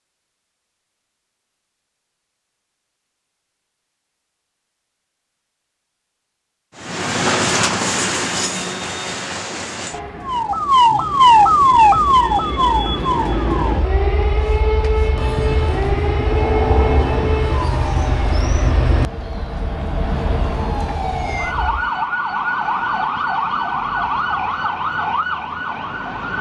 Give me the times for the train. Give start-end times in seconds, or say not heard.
6.8-21.9.